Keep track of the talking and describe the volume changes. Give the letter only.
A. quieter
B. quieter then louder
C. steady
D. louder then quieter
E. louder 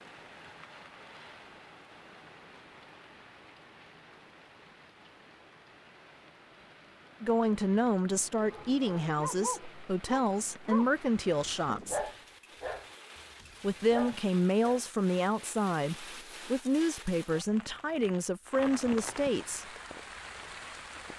C.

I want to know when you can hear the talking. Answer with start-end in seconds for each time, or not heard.
7.2-12.0, 13.6-19.6.